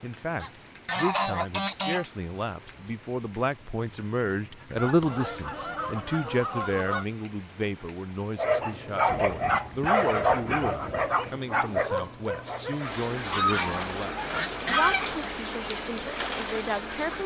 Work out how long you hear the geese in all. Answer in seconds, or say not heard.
8 s.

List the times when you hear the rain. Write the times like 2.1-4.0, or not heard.
0.0-17.2.